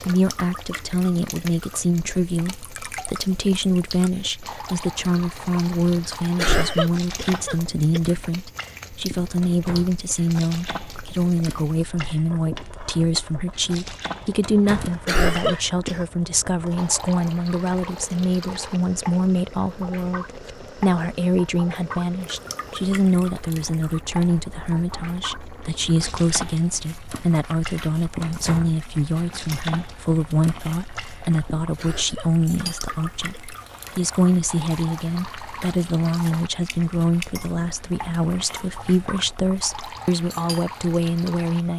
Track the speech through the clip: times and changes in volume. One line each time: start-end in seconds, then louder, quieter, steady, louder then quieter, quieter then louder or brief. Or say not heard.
0.1-41.7 steady.